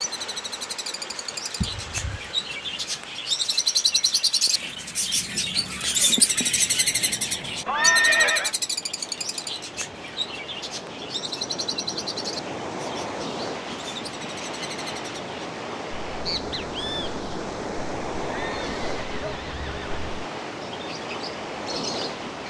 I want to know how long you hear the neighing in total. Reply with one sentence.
The neighing can be heard for 3 seconds in total.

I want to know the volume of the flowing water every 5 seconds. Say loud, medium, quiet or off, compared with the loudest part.
medium, medium, loud, loud, loud.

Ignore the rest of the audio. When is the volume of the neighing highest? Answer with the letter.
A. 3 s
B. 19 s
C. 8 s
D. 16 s
C.